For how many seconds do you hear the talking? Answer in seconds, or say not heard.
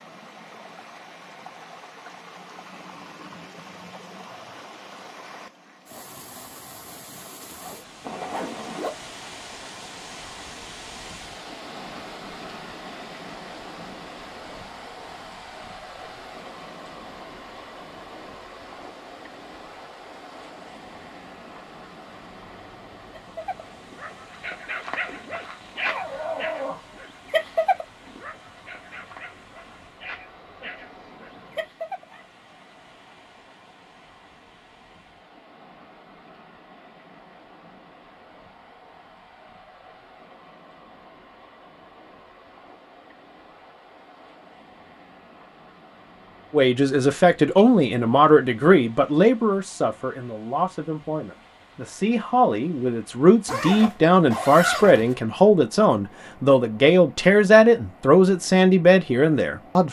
13 s.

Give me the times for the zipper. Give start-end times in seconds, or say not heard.
8.0-8.9, 25.8-26.8, 53.5-55.1.